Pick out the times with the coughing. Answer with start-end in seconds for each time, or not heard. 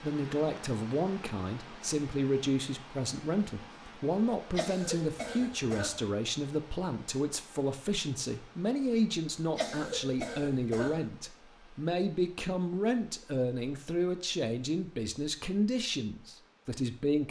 4.5-6.0, 9.6-11.1.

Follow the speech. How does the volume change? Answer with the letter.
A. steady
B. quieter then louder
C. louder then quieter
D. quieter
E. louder
A.